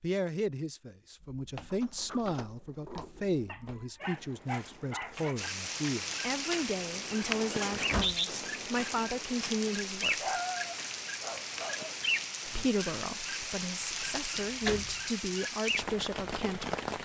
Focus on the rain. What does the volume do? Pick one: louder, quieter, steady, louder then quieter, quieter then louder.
steady.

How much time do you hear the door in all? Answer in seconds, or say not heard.
3 s.